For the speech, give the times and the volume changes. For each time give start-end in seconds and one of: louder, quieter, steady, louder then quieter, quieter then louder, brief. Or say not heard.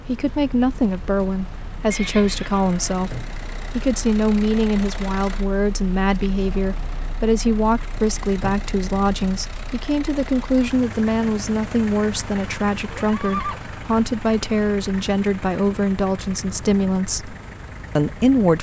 0.0-17.4 steady
17.9-18.5 brief.